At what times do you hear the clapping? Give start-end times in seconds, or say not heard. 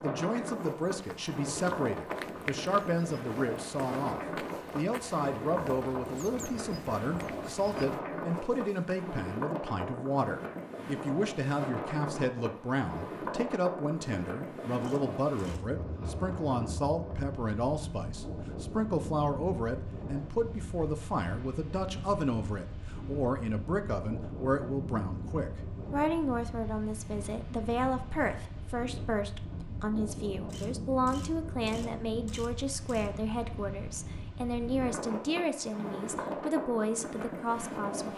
not heard.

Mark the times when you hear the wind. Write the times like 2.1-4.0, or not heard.
0.0-38.1.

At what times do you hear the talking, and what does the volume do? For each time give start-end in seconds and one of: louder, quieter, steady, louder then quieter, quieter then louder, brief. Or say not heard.
0.0-38.1 steady.